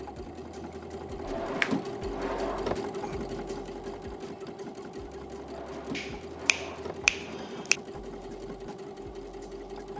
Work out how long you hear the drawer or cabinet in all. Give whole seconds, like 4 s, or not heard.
4 s.